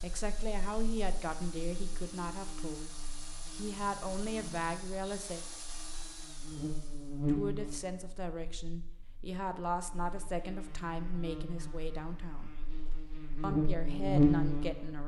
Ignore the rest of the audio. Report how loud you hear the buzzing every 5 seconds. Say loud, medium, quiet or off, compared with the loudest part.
quiet, medium, loud.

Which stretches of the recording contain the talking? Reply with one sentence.
The talking can be heard from 0.0 to 5.4 s, from 7.2 to 12.6 s and from 13.4 to 15.0 s.